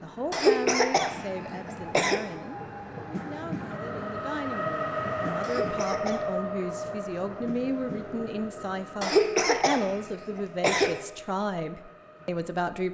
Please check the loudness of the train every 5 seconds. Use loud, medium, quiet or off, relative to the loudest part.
loud, loud, quiet.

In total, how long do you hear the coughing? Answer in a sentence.
You can hear the coughing for 5 seconds altogether.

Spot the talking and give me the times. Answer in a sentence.
You can hear the talking from 0.0 to 12.8 s.